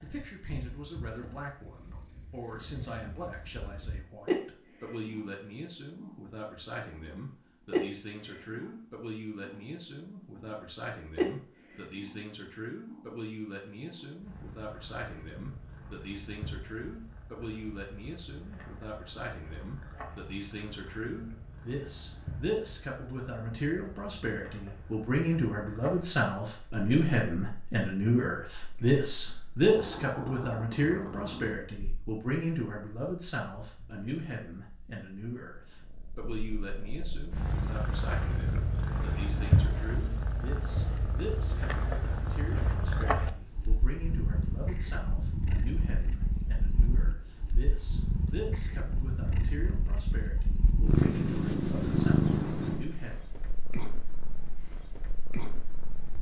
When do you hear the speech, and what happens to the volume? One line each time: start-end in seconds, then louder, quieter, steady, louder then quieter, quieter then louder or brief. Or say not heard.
0.0-53.1 louder then quieter.